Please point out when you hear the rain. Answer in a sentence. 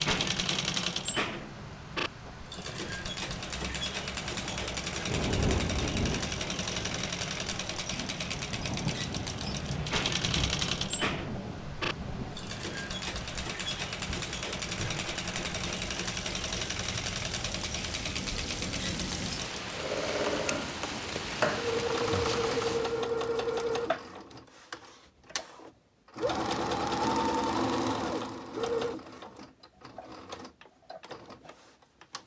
The rain can be heard from 0.0 to 23.1 s.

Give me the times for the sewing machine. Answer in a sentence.
The sewing machine can be heard from 0.0 to 32.2 s.